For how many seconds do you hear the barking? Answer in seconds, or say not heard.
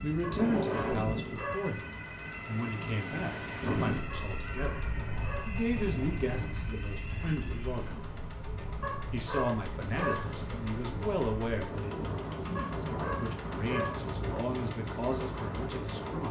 6 s.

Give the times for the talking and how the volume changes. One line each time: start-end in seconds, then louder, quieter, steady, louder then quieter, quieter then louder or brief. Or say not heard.
0.0-16.2 steady.